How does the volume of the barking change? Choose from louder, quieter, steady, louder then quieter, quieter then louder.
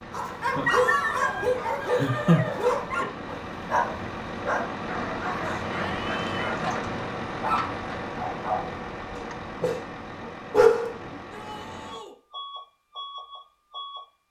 quieter then louder.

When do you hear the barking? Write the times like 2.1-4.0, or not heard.
0.1-11.1.